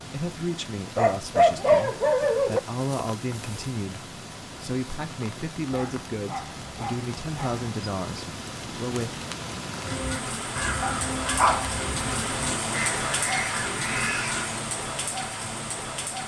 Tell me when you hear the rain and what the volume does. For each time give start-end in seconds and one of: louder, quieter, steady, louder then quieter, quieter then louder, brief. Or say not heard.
0.0-16.2 louder.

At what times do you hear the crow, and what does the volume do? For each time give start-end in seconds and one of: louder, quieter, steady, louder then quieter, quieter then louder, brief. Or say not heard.
9.8-14.6 quieter then louder.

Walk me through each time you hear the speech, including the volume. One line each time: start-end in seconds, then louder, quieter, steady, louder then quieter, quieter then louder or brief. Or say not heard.
0.1-9.2 steady.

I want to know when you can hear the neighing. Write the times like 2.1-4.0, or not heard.
not heard.